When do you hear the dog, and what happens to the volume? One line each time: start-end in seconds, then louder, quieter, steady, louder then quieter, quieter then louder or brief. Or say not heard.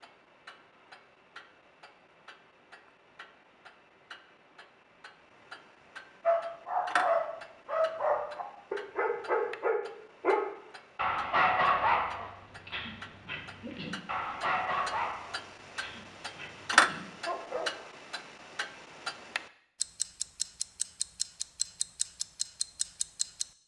6.2-17.9 quieter.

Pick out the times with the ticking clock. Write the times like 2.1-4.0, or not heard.
0.0-23.4.